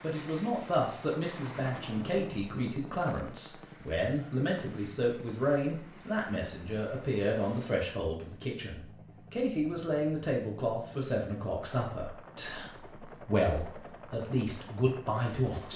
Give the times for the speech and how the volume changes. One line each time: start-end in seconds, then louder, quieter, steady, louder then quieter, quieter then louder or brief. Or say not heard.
0.0-15.7 steady.